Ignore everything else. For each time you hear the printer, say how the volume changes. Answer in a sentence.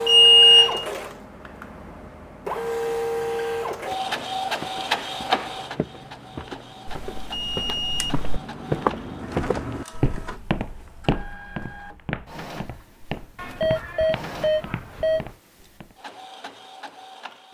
You can hear the printer from 0.0 to 17.4 s, getting quieter.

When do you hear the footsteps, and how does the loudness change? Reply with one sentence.
The footsteps can be heard from 3.8 to 15.9 s, getting louder then quieter.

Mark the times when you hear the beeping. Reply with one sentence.
You can hear the beeping from 0.1 to 0.8 s, from 6.8 to 8.4 s and from 13.3 to 15.3 s.